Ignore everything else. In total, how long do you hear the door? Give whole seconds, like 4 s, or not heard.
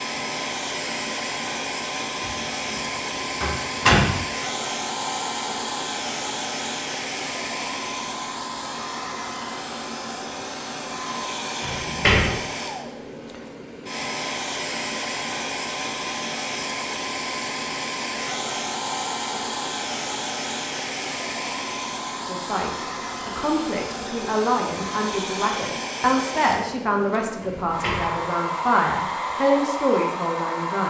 3 s.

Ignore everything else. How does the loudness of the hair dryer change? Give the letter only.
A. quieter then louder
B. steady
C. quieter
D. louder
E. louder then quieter
B.